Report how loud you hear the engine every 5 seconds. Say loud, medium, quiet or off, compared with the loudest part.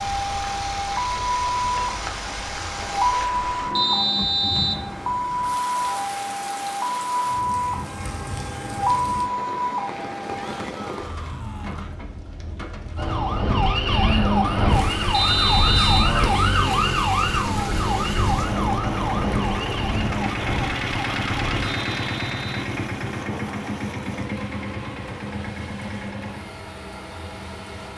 medium, off, off, loud, loud, medium.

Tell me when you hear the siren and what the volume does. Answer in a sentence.
The siren can be heard from 0.0 to 10.7 s, at a steady volume; and from 12.9 to 21.7 s, getting quieter.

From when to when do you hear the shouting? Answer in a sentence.
You can hear the shouting from 10.3 to 11.9 s.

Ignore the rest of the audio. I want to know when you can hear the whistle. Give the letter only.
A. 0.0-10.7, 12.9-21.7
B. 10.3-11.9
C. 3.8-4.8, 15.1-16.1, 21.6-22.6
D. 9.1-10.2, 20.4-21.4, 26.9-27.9
C.